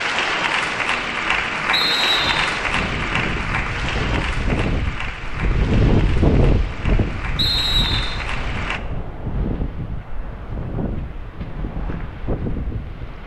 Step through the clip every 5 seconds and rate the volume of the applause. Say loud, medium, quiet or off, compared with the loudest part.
loud, medium, off.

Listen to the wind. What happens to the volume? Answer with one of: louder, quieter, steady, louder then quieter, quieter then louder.
louder then quieter.